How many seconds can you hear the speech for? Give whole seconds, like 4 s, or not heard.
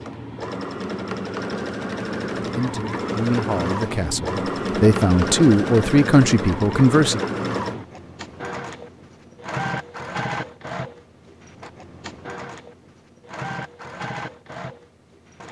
5 s.